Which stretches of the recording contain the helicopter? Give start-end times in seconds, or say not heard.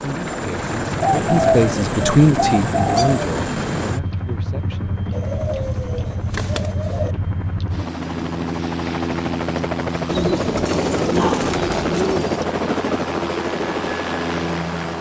0.0-14.9.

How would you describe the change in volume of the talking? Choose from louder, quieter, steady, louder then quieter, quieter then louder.
louder then quieter.